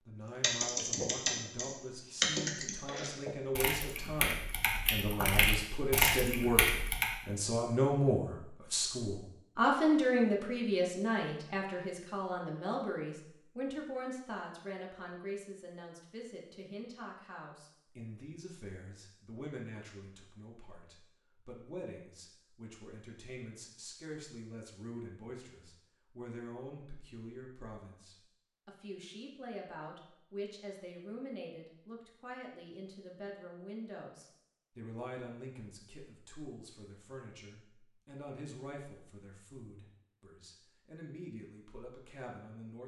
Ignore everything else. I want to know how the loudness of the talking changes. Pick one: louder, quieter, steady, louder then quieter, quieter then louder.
quieter.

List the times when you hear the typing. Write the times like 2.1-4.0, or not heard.
0.4-7.1.